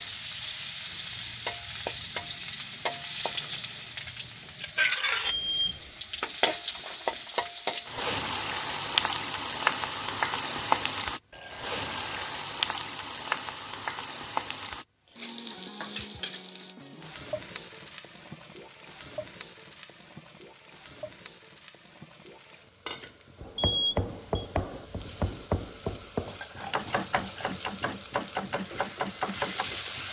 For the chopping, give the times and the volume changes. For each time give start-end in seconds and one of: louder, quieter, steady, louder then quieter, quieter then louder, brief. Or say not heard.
23.4-29.7 steady.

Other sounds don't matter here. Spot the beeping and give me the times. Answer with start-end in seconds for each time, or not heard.
5.2-5.9, 11.3-12.3, 23.6-24.4.